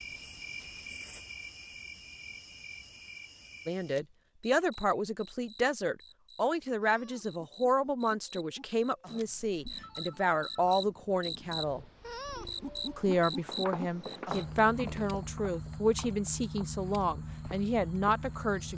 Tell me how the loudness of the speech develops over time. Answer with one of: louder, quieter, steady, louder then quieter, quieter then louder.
steady.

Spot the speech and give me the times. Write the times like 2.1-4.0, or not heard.
3.6-11.8, 12.9-18.7.